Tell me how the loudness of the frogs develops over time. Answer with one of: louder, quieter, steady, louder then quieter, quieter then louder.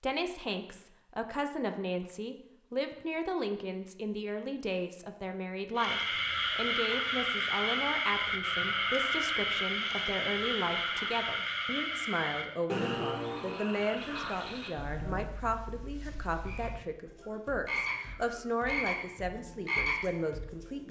quieter then louder.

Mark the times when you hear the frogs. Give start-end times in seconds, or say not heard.
5.8-20.8.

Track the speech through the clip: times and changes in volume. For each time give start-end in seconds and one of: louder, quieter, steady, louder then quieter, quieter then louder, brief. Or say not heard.
0.0-20.8 steady.